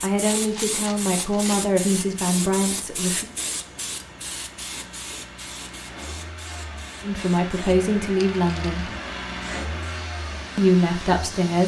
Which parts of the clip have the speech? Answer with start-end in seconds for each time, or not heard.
0.0-3.2, 7.0-8.9, 10.6-11.6.